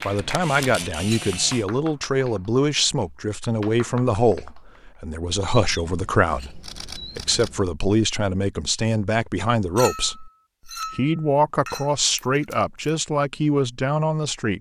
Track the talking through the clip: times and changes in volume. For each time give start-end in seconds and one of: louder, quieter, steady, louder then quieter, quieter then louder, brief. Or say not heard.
0.1-14.5 steady.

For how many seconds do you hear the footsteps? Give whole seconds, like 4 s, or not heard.
not heard.